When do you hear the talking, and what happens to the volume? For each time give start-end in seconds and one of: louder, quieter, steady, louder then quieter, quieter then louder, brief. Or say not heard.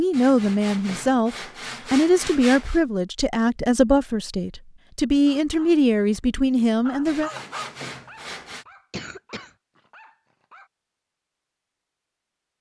0.0-7.3 steady.